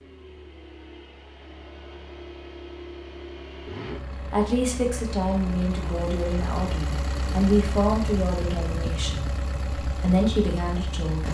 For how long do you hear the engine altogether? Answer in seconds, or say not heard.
11 s.